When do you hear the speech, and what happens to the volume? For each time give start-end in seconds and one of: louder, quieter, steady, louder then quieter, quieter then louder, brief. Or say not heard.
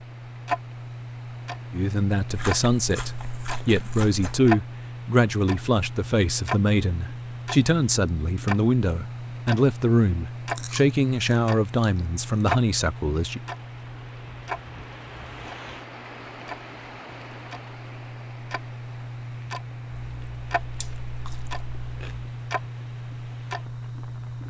1.7-13.4 steady.